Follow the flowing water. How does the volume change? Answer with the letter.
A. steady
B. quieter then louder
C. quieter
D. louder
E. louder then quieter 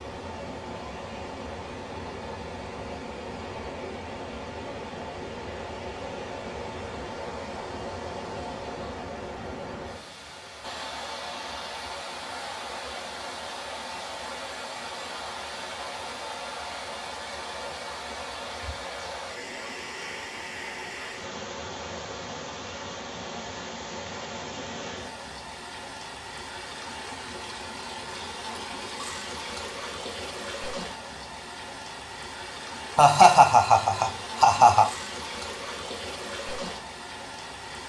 A.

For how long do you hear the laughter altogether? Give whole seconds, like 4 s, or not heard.
2 s.